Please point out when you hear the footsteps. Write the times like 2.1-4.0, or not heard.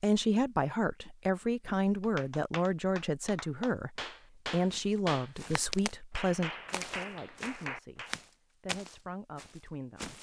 4.7-6.0, 6.7-10.1.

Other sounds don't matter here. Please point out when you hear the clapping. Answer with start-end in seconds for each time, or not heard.
2.0-8.1.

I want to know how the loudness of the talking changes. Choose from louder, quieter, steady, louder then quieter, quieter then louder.
quieter.